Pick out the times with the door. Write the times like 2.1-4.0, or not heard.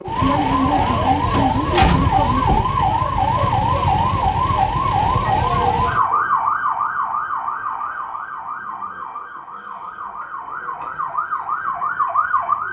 1.3-2.7.